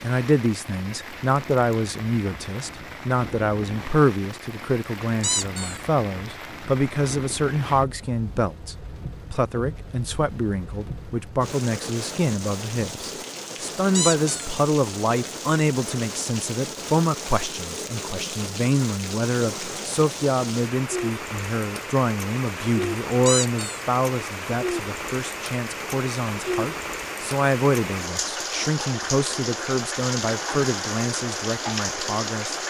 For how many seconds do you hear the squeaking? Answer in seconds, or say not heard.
2 s.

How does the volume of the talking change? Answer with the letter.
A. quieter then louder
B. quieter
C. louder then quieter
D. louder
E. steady
E.